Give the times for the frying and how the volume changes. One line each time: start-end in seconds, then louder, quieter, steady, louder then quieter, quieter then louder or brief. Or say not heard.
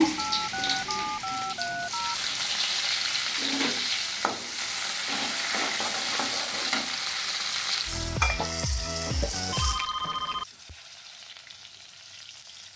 0.0-12.7 quieter.